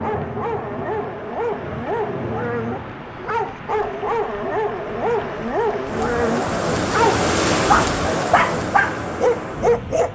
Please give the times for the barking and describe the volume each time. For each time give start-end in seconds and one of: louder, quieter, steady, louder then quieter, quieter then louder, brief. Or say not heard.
0.0-10.0 louder.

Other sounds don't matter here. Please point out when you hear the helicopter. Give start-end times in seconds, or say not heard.
not heard.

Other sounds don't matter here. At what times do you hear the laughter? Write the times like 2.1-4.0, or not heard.
not heard.